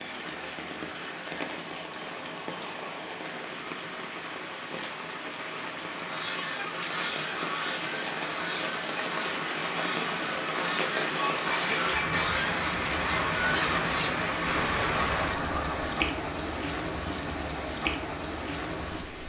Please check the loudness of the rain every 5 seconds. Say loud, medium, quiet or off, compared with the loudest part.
medium, medium, loud, loud.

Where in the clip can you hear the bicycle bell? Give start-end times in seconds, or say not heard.
11.4-12.4.